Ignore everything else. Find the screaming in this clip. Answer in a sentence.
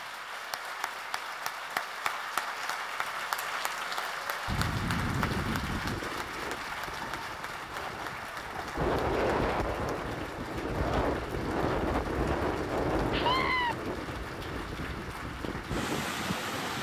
The screaming can be heard from 13.1 to 13.8 s.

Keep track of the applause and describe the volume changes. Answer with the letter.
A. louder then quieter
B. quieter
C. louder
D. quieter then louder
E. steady
B.